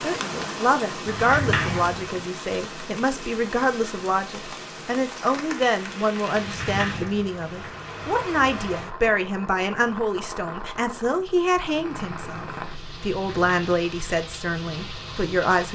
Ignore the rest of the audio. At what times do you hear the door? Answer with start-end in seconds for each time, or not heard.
1.1-2.2, 6.3-7.8, 13.1-13.7.